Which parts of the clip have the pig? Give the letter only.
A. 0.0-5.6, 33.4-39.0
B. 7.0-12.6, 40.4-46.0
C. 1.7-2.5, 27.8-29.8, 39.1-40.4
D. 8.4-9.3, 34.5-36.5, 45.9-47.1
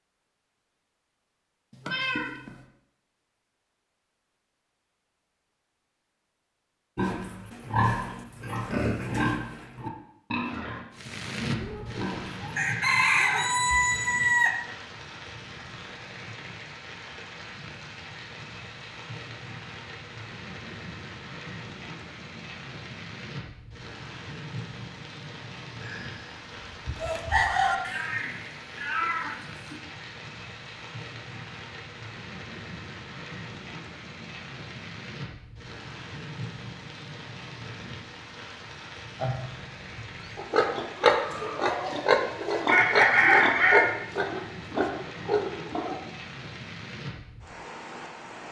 B.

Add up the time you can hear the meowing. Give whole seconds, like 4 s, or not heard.
4 s.